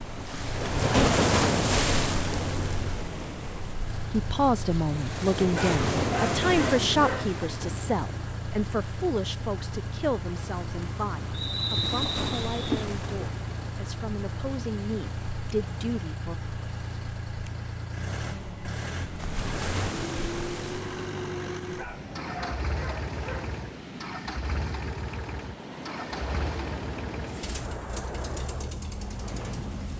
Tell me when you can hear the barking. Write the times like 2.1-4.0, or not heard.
5.5-7.3, 21.8-23.4.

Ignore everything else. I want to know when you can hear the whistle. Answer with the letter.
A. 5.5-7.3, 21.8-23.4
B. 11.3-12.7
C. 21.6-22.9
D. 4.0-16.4
B.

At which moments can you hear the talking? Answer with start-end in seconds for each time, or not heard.
4.0-16.4.